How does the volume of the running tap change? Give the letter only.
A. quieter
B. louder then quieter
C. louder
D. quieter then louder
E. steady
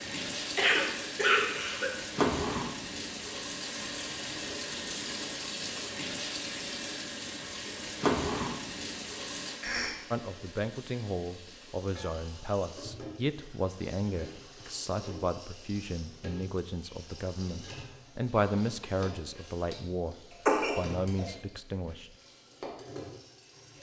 A.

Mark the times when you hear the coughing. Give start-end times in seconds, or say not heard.
0.6-1.9, 9.6-10.0, 20.4-21.2.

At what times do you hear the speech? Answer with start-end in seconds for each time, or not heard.
10.1-22.1.